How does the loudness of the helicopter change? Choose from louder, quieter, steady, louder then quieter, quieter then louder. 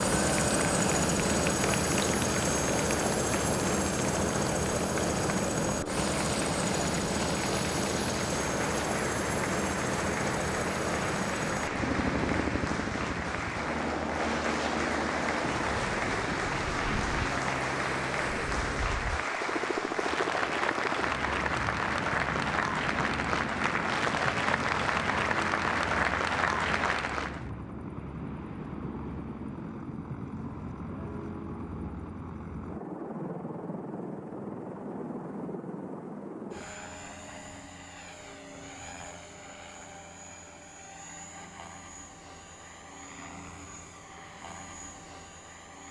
quieter.